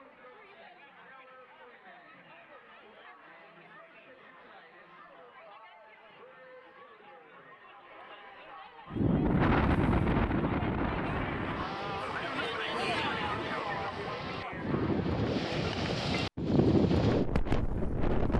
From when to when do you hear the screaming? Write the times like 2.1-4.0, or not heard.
not heard.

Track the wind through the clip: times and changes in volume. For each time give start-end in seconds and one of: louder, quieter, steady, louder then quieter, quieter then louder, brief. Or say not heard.
8.9-18.3 quieter then louder.